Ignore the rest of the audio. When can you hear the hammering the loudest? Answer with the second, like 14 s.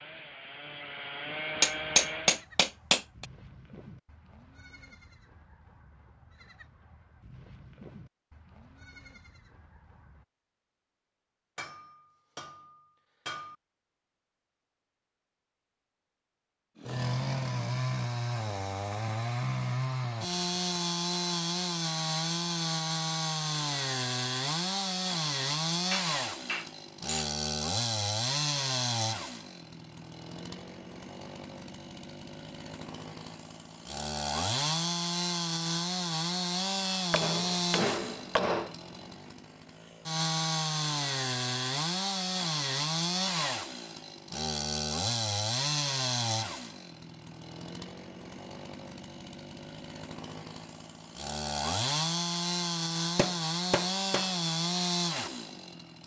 2 s.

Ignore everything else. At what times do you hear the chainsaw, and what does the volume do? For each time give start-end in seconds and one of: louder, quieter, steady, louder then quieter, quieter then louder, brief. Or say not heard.
0.0-2.5 brief
16.8-56.0 steady.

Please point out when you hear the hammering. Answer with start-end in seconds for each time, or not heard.
1.6-3.2, 11.6-13.6, 25.9-27.3, 37.1-38.8, 53.1-54.3.